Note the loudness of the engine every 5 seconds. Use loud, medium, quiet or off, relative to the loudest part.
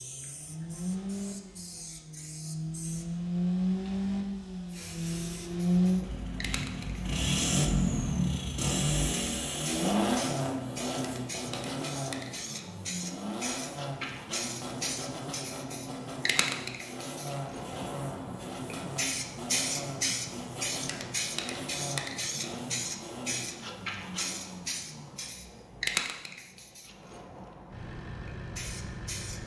medium, loud, medium, medium, quiet, quiet.